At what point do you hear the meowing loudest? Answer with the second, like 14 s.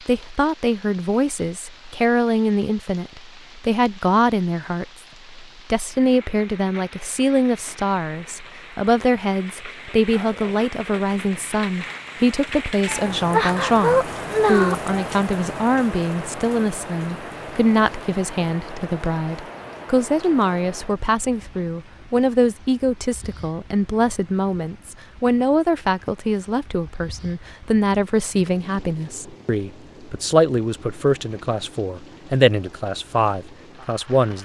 14 s.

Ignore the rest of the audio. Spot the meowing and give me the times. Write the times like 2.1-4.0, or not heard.
12.8-15.1.